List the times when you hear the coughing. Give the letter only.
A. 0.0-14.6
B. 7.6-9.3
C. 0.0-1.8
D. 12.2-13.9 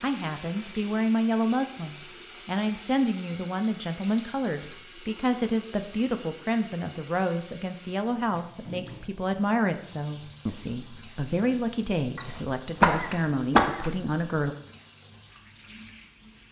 D.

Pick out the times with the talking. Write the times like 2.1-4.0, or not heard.
0.0-14.6.